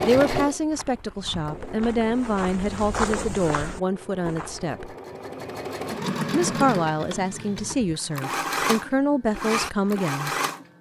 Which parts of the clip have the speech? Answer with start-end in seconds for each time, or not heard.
0.0-5.0, 6.3-10.3.